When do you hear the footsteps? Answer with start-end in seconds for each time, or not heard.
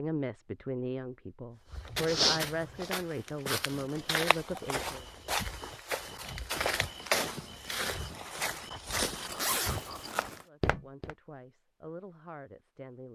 1.7-11.2.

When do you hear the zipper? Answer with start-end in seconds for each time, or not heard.
9.0-10.4.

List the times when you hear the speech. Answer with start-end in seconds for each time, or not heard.
0.0-5.0, 10.4-13.0.